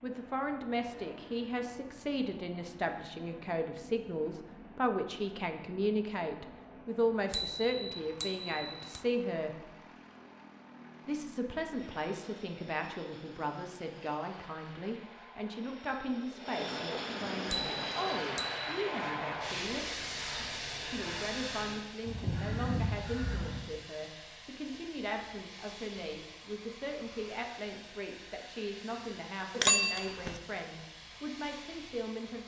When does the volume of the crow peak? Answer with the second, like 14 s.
23 s.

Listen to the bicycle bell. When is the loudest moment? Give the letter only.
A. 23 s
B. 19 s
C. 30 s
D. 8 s
C.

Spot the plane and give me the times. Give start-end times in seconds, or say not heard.
0.0-32.4.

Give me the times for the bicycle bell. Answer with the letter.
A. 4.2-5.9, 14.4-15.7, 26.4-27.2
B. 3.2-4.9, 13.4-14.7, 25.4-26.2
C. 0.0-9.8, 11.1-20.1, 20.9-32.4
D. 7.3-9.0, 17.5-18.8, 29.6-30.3
D.